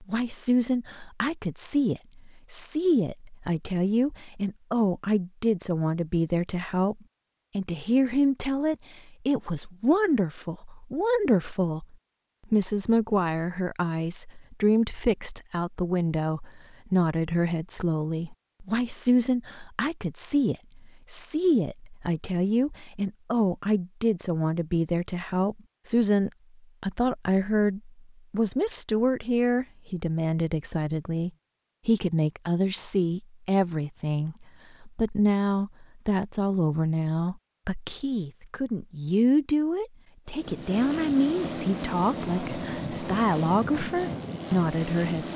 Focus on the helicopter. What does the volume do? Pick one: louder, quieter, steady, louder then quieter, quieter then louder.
steady.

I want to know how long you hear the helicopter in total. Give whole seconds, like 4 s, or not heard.
5 s.